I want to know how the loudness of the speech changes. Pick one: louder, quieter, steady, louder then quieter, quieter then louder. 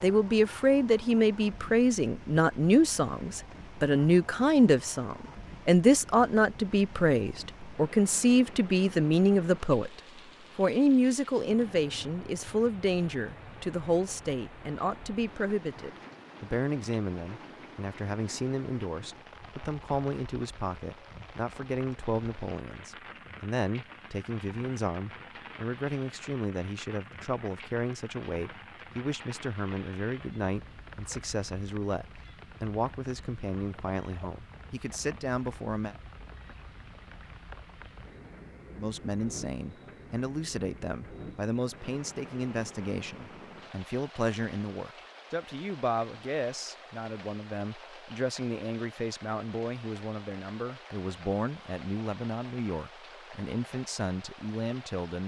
quieter.